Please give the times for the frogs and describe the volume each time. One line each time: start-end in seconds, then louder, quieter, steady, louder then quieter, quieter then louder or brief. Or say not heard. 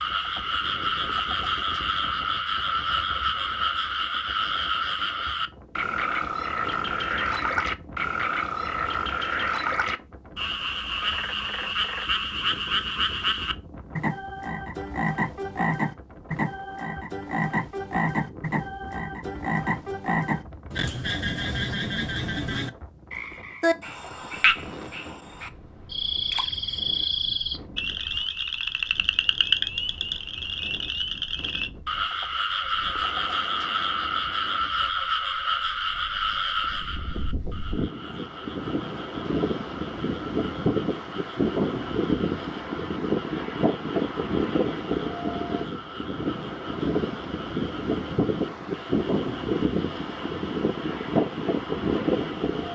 0.0-52.7 quieter.